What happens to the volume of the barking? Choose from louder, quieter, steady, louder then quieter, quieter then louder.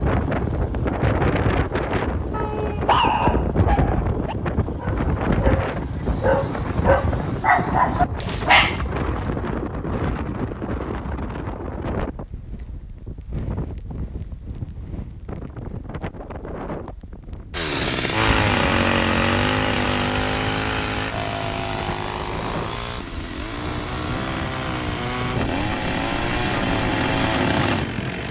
quieter then louder.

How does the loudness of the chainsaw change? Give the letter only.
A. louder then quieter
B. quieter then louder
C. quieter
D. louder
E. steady
B.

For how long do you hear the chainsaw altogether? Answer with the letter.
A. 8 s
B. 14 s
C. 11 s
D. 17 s
C.